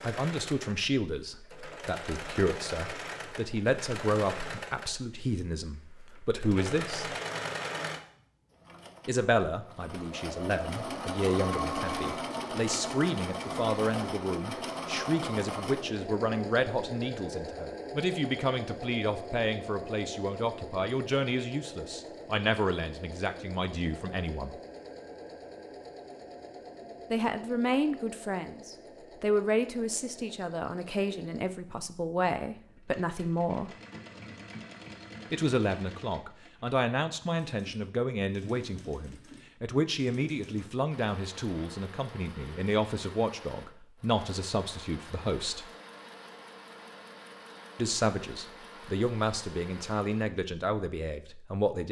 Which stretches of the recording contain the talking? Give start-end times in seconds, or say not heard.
0.0-7.2, 9.1-24.6, 27.1-33.7, 35.3-45.6, 47.8-51.8.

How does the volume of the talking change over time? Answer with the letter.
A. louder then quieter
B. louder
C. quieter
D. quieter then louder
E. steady
E.